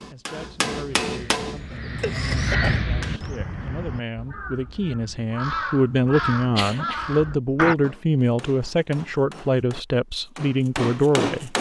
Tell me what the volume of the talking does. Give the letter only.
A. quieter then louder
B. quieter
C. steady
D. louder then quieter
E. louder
E.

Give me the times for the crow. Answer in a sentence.
The crow can be heard from 0.8 to 7.8 s.